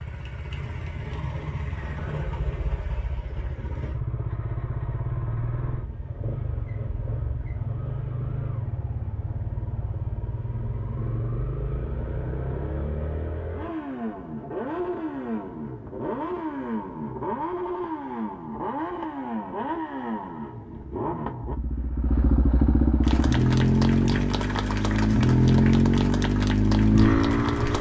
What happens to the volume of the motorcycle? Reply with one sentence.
The loudness of the motorcycle goes up.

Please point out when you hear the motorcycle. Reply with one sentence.
You can hear the motorcycle from 0.0 to 27.7 s.